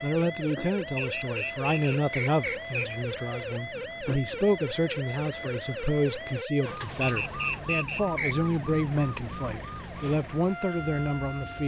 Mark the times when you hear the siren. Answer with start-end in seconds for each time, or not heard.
0.0-11.6.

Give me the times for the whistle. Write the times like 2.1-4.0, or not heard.
0.9-3.0, 7.0-8.5.